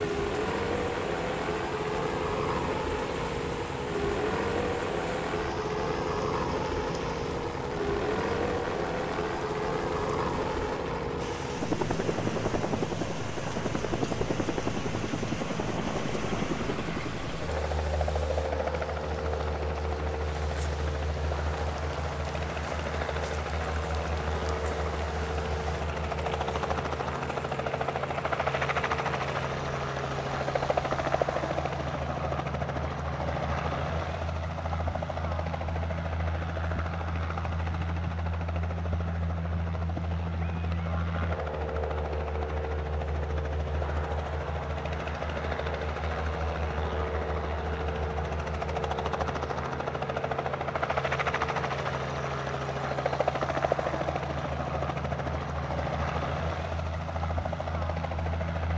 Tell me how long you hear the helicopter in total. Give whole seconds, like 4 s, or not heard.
59 s.